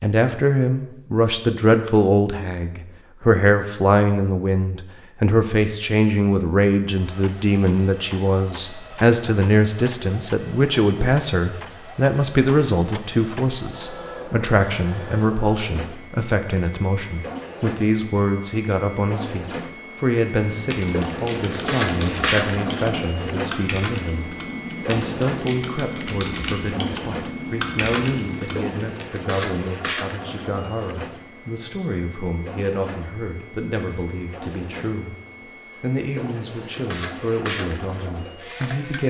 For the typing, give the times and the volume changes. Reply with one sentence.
You can hear the typing from 20.5 to 29.1 s, at a steady volume.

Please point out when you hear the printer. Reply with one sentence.
You can hear the printer from 6.8 to 39.0 s.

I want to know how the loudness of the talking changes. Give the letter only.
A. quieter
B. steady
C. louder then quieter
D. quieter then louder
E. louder
A.